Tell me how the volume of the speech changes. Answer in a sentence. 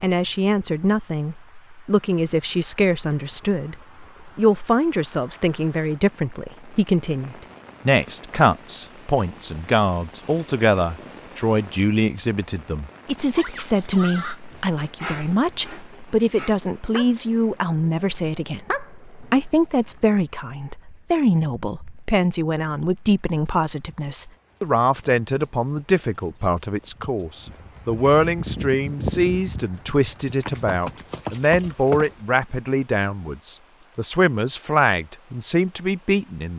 The volume of the speech stays about the same.